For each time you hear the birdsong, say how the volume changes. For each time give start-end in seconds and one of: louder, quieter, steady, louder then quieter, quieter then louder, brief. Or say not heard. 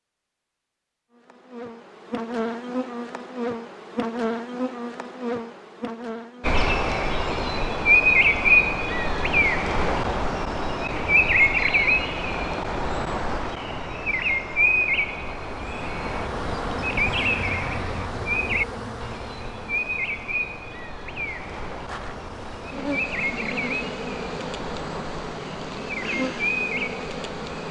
6.4-27.6 quieter.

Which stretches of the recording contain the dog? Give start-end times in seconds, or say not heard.
not heard.